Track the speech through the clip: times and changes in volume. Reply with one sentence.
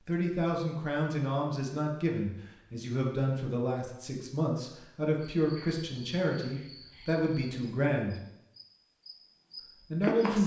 You can hear the speech from 0.0 to 8.2 s, at a steady volume; and briefly from 9.9 to 10.4 s.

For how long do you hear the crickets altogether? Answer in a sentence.
The crickets can be heard for 5 seconds in total.